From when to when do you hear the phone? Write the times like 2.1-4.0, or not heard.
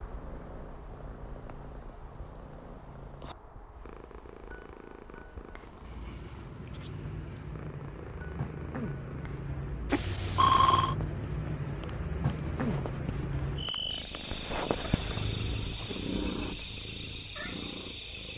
9.9-10.9.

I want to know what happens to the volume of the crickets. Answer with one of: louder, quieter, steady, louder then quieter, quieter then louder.
louder.